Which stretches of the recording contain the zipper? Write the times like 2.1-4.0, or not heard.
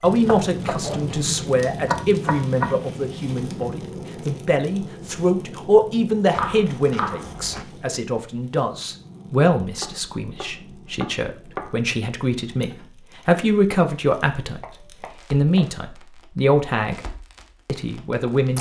0.7-1.3.